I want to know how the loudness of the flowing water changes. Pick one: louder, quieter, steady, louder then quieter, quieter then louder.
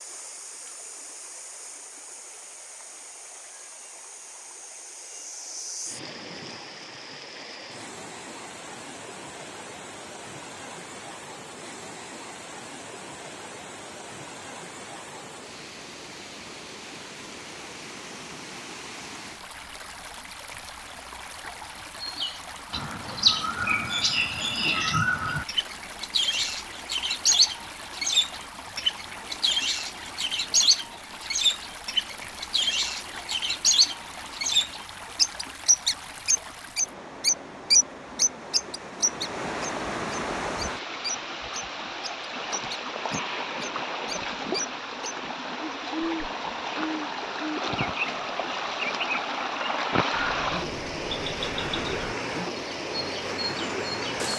louder.